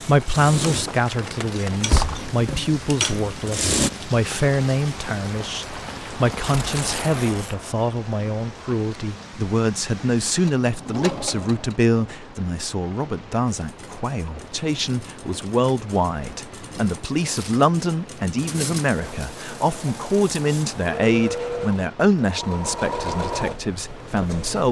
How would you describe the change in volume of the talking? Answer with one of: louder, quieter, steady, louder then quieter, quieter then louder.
steady.